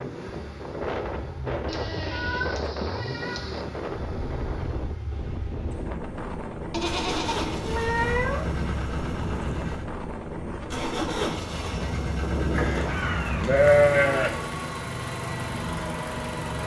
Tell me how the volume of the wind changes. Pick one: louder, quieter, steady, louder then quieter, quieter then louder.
steady.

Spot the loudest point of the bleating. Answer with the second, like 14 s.
14 s.